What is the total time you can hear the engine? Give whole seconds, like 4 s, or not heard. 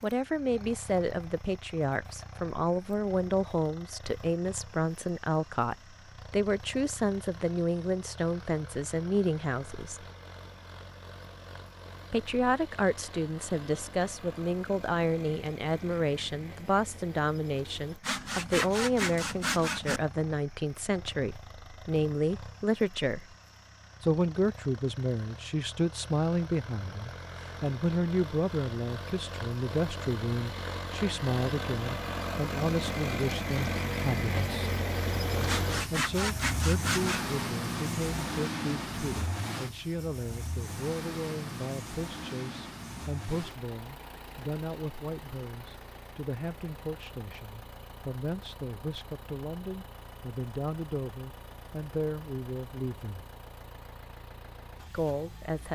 56 s.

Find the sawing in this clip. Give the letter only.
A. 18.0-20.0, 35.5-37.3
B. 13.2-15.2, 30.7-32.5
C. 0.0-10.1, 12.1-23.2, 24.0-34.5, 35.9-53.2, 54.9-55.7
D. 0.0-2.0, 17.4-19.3
A.